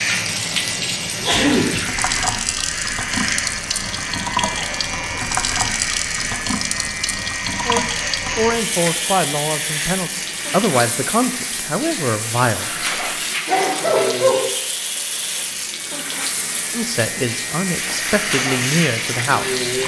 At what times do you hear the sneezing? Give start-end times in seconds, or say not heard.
1.1-1.8, 13.4-14.4.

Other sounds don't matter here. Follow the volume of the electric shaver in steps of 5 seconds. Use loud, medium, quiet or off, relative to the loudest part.
loud, loud, medium, loud.